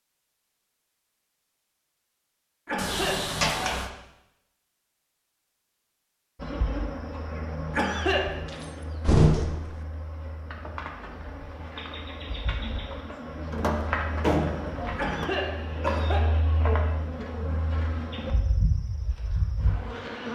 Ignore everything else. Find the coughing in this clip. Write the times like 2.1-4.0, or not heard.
2.6-3.2, 7.7-8.3, 14.9-16.2.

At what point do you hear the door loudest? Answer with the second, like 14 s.
9 s.